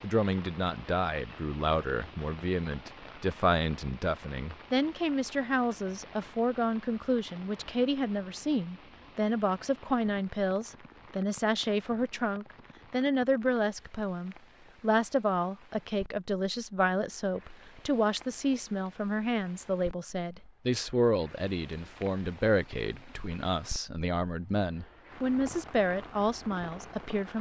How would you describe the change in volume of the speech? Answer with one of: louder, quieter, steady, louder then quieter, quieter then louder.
steady.